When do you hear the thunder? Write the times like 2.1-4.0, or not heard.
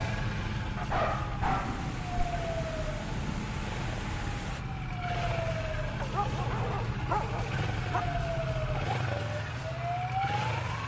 1.4-4.7.